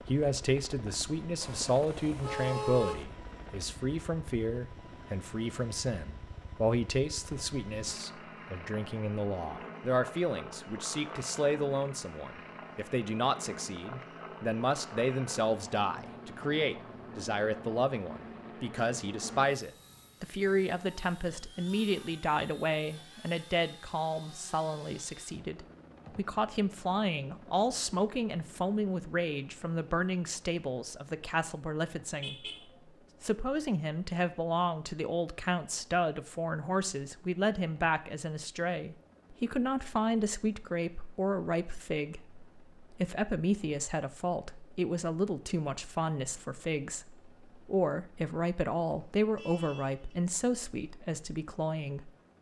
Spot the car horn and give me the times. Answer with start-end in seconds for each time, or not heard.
1.4-3.0, 32.2-32.8, 49.1-50.1.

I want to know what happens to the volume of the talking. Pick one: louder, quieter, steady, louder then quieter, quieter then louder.
steady.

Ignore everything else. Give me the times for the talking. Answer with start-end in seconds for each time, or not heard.
0.1-32.5, 33.2-52.1.